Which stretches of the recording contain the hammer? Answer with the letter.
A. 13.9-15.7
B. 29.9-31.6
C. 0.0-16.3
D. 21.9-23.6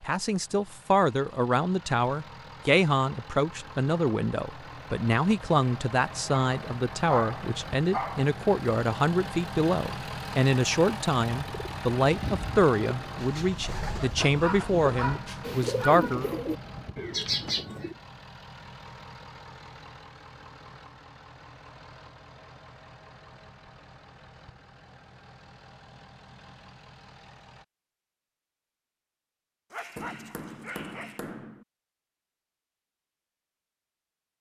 B.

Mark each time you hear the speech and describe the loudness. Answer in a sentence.
You can hear the speech from 0.0 to 16.3 s, at a steady volume.